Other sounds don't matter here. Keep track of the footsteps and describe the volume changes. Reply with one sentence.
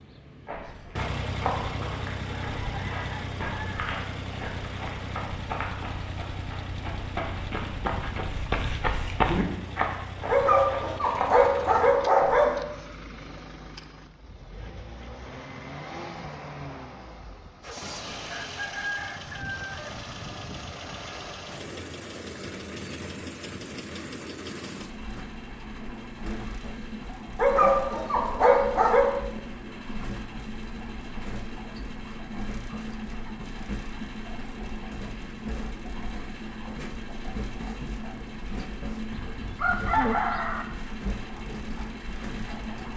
The volume of the footsteps goes up.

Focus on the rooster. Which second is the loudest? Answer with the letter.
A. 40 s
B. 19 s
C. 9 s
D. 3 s
A.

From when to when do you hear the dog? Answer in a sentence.
The dog can be heard from 10.2 to 12.6 s and from 27.4 to 29.1 s.